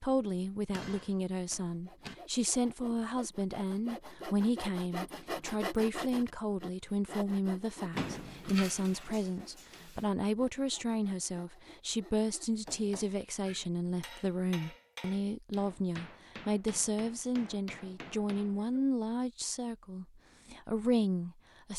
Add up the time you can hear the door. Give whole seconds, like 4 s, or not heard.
2 s.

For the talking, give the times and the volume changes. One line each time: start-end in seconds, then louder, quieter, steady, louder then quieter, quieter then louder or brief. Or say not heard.
0.0-21.7 steady.